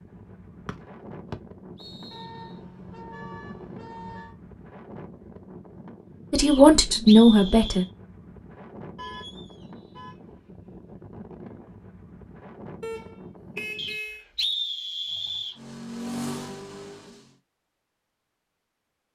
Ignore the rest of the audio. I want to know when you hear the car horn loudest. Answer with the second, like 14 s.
14 s.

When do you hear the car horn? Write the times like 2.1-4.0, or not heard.
2.1-4.3, 8.9-10.2, 12.8-14.2.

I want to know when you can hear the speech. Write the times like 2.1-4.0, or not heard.
6.3-7.8.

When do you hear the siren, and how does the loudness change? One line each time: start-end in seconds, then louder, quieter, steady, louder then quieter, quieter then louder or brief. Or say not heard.
not heard.